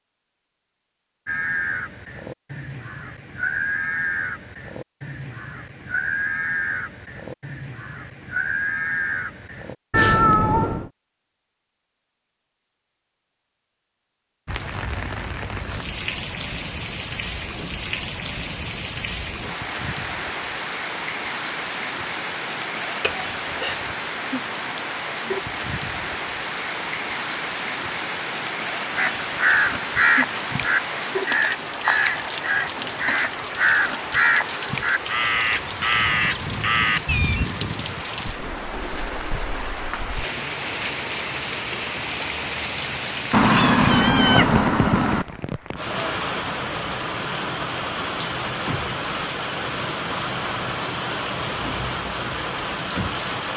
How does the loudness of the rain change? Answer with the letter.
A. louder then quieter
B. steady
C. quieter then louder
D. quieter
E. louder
B.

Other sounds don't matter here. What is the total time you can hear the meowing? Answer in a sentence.
The meowing can be heard for 4 seconds in total.